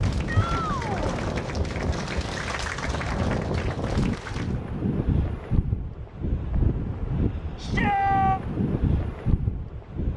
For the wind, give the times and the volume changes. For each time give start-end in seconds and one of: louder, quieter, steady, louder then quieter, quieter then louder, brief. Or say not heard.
0.0-10.1 steady.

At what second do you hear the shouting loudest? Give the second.
8 s.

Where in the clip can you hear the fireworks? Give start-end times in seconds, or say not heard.
not heard.